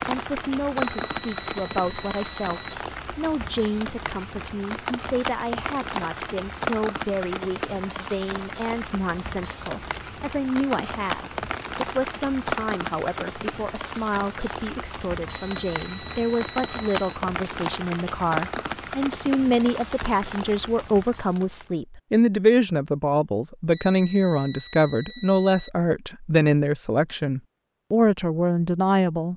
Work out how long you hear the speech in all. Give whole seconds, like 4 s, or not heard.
29 s.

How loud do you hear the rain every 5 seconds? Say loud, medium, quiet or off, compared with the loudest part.
loud, loud, loud, loud, medium, off.